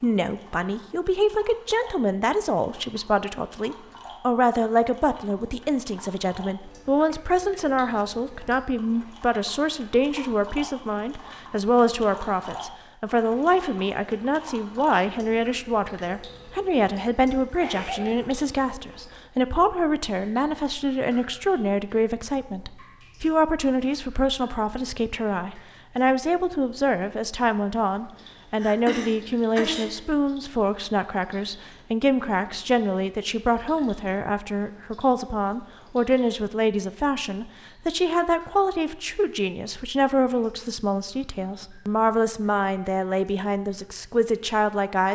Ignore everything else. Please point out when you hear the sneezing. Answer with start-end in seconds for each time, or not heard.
17.6-18.3, 28.6-29.9.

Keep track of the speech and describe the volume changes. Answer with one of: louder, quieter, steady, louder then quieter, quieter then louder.
steady.